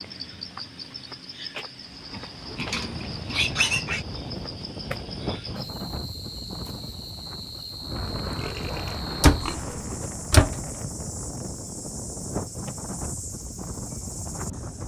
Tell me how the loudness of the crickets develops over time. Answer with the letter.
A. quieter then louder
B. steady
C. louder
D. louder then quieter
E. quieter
B.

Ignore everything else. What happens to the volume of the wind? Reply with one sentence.
The volume of the wind stays about the same.